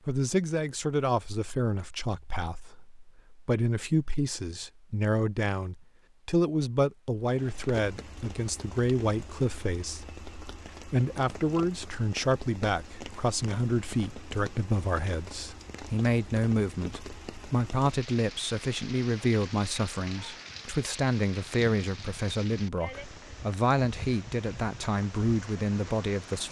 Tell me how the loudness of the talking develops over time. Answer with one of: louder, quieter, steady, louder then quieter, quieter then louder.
steady.